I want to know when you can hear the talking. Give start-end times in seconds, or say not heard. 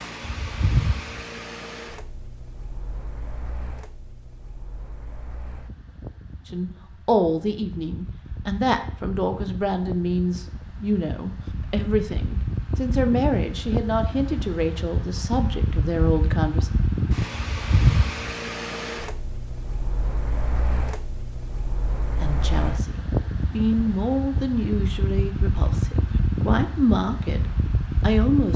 6.5-16.7, 22.2-28.5.